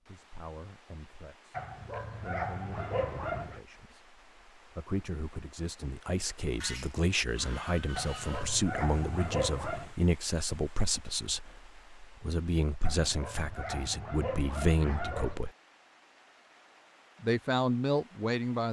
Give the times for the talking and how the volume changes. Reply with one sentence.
The talking can be heard from 0.1 to 15.5 s, getting louder; and briefly from 17.2 to 18.6 s.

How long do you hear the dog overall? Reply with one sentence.
You can hear the dog for 7 seconds altogether.